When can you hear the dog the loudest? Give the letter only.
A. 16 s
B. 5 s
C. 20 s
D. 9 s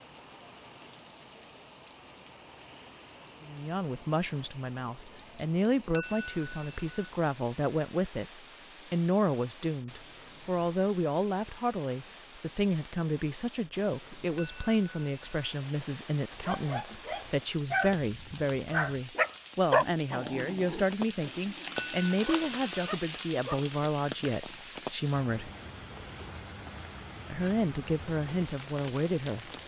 C.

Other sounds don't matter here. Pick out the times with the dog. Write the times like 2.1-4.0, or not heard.
16.4-23.6.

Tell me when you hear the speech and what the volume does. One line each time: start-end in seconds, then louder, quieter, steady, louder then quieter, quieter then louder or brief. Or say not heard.
3.5-25.5 steady
27.3-29.5 brief.